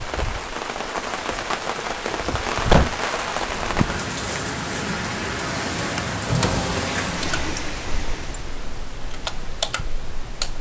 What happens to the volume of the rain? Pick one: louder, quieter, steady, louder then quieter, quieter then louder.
steady.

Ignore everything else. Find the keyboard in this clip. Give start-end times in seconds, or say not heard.
7.1-10.5.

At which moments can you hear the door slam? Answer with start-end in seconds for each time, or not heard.
1.3-2.9, 6.0-6.7.